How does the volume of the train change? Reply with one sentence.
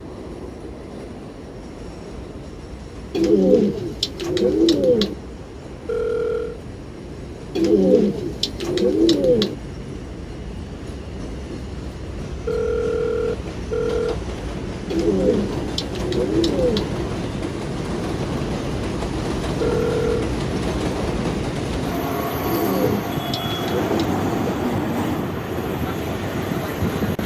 The loudness of the train goes up.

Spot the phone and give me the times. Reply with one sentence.
You can hear the phone from 5.8 to 6.6 s, from 12.4 to 14.2 s and from 19.6 to 20.3 s.